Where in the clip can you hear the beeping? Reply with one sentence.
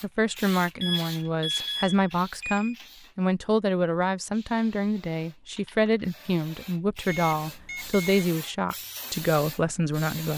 The beeping can be heard from 0.8 to 2.8 s and from 7.0 to 8.2 s.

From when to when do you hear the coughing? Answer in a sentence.
The coughing can't be heard in this clip.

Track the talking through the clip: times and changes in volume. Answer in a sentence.
You can hear the talking from 0.0 to 10.3 s, at a steady volume.